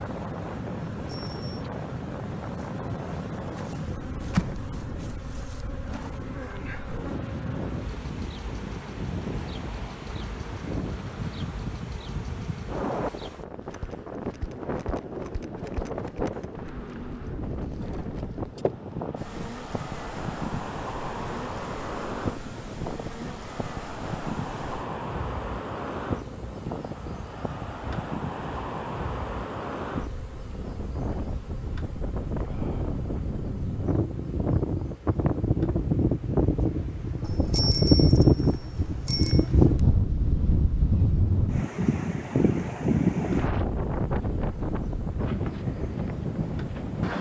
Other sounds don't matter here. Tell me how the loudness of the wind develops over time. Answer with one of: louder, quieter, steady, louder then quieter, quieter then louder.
louder.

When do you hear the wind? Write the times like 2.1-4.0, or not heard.
0.0-47.1.